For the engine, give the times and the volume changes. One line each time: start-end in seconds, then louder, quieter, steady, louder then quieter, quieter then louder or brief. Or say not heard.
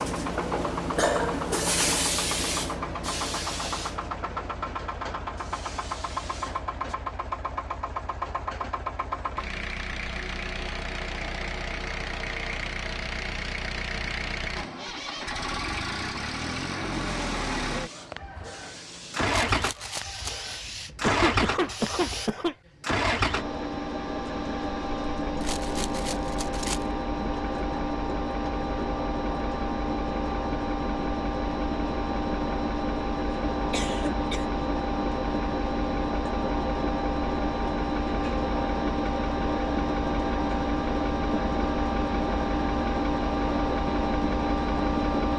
0.0-45.3 louder.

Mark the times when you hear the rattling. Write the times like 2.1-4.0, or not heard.
19.2-20.4, 25.4-26.9.